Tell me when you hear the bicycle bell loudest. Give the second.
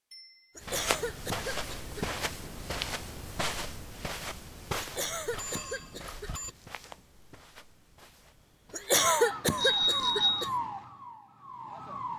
10 s.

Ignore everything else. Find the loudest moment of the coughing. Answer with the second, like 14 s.
9 s.